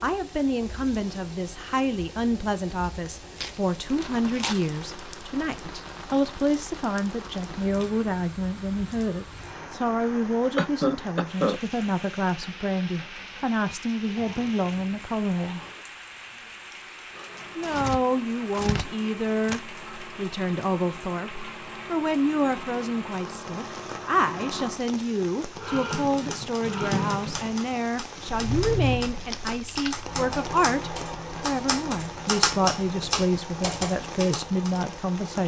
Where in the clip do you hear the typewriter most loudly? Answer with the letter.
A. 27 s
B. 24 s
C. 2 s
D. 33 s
D.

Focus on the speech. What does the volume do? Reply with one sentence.
The loudness of the speech stays about the same.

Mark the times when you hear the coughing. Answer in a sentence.
You can hear the coughing from 10.6 to 11.6 s.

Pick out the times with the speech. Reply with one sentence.
You can hear the speech from 0.0 to 15.6 s and from 17.6 to 35.4 s.